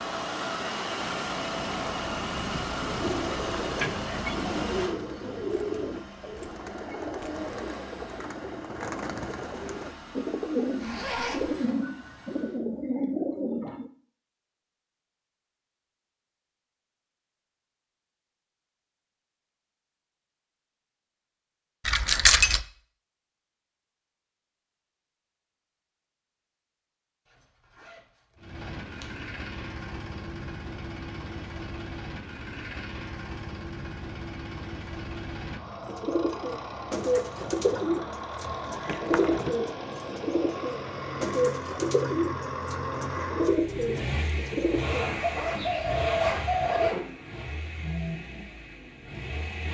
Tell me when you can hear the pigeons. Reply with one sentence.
You can hear the pigeons from 2.8 to 13.9 s and from 35.9 to 46.9 s.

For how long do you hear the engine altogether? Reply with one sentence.
The engine can be heard for 34 seconds in total.